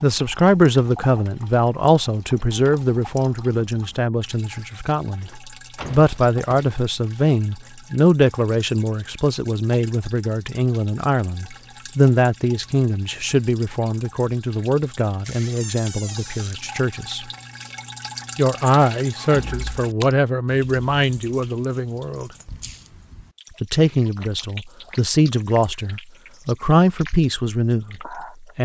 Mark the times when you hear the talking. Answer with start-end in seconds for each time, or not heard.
0.0-17.2, 18.4-22.3, 23.6-28.6.